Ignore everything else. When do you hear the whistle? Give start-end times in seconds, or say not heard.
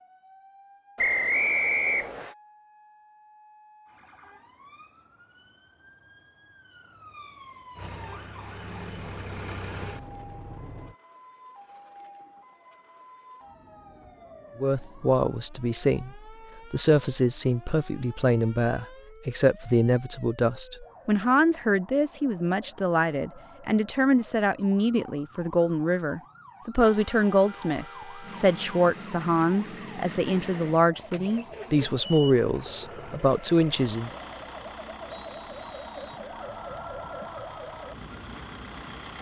0.9-2.4, 35.1-36.2.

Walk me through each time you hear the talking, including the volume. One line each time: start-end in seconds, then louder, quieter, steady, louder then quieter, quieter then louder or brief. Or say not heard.
14.6-34.1 steady.